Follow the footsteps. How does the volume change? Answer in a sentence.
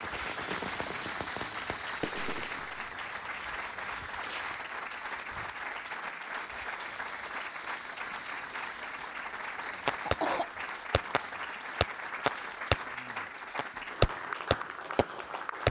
The loudness of the footsteps goes down.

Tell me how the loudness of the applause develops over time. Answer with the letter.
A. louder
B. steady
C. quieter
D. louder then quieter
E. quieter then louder
B.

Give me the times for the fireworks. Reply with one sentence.
You can hear the fireworks from 0.0 to 2.9 s and from 9.7 to 15.6 s.